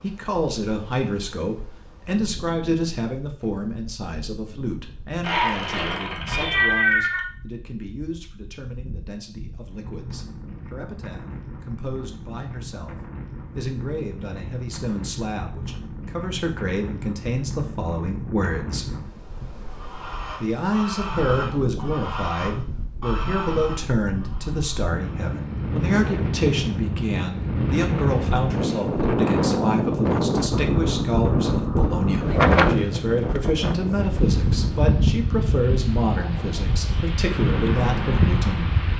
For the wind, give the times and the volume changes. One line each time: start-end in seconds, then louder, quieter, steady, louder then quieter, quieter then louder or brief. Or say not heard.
0.0-38.9 louder.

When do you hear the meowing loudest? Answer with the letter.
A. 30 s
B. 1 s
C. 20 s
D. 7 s
D.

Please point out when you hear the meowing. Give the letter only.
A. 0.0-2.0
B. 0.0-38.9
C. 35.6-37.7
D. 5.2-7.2
D.